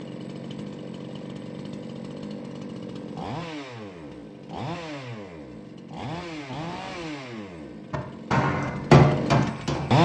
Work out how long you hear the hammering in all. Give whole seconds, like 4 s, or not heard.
2 s.